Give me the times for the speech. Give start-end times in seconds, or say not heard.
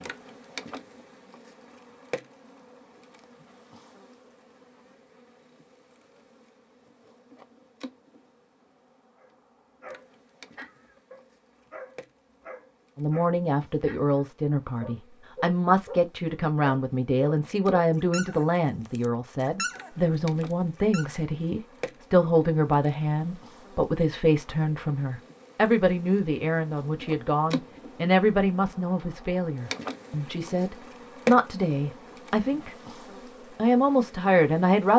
12.9-32.8, 33.5-34.9.